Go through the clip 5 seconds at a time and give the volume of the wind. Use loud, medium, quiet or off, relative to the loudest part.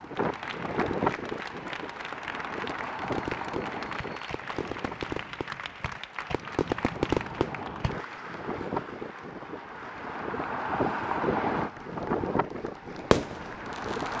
loud, medium, loud.